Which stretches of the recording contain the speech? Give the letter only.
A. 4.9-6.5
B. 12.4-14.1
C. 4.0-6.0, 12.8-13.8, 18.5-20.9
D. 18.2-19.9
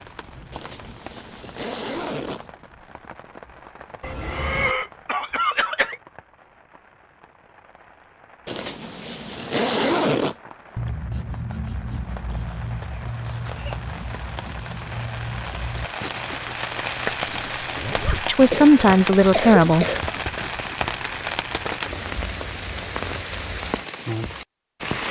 D.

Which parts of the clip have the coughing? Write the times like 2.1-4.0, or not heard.
4.0-6.0, 12.8-13.8, 18.5-20.9.